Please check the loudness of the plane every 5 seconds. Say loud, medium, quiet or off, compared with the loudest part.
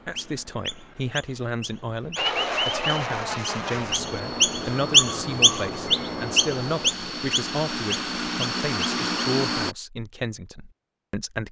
loud, loud, off.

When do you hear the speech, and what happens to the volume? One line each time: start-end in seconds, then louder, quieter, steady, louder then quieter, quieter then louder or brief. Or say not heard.
0.1-11.4 steady.